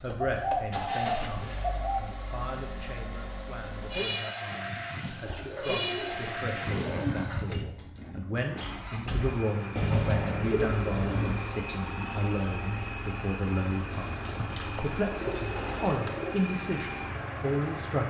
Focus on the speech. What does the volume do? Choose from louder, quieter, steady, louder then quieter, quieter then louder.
louder.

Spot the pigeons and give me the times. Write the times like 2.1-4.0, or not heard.
0.2-2.0, 5.0-7.0, 9.8-11.4, 13.9-16.4.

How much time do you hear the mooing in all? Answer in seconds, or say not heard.
2 s.